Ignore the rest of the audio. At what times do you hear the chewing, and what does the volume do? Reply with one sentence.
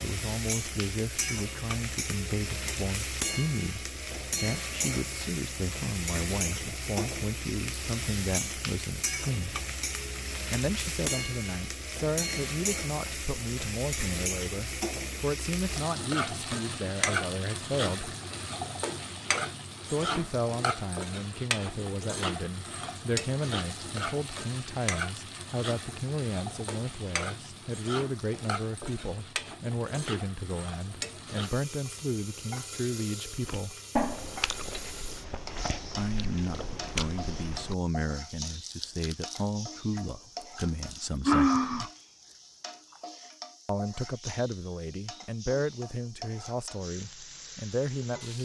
You can hear the chewing from 33.5 to 42.4 s, getting quieter then louder.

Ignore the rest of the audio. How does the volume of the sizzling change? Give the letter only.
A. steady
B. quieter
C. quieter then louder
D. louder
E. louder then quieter
B.